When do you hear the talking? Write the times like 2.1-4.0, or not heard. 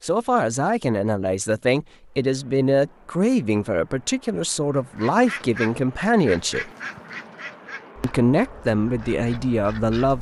0.0-6.7, 8.0-10.1.